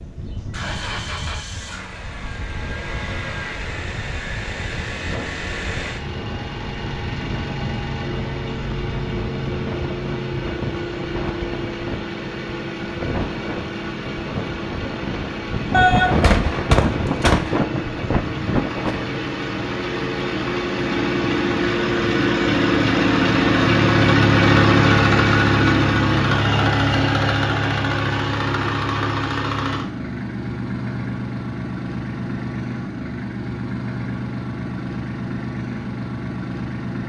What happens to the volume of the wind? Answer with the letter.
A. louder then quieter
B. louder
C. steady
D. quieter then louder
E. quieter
B.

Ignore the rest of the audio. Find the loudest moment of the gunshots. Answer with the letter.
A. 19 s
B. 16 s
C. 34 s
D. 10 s
B.